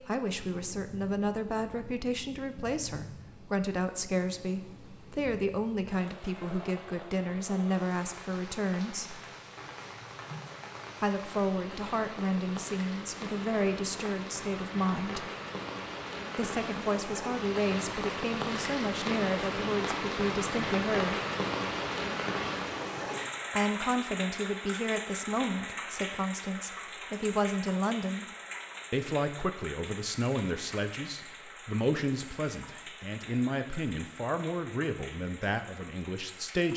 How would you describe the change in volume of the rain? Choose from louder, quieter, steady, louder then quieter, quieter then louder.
louder then quieter.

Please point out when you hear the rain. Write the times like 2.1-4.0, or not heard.
0.0-36.7.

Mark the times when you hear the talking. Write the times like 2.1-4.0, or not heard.
0.0-9.2, 11.0-15.3, 16.4-21.1, 23.5-28.2, 28.9-36.7.